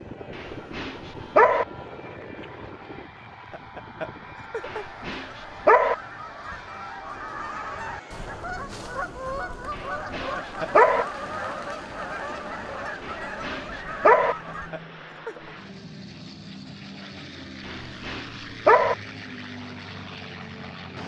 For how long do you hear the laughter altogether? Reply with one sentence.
You can hear the laughter for 3 seconds altogether.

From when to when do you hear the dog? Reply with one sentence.
The dog can be heard from 0.3 to 1.6 s, from 4.7 to 6.0 s, from 9.8 to 11.1 s, from 13.1 to 14.3 s and from 17.6 to 18.9 s.